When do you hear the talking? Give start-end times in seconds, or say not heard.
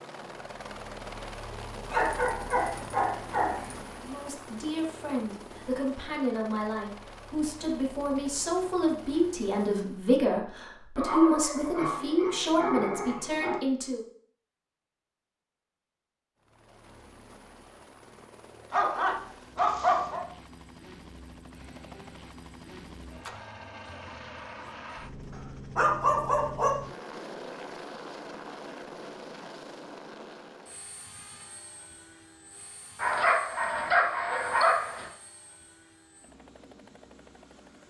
4.0-14.1.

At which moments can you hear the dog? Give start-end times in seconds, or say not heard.
1.9-3.8, 10.9-13.6, 18.7-20.2, 25.8-26.8, 33.0-35.0.